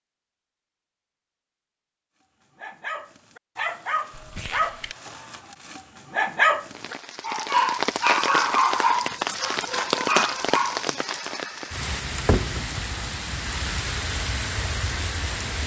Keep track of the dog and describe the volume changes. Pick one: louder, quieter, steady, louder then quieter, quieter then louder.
louder then quieter.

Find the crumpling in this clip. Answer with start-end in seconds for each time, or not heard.
4.1-5.0.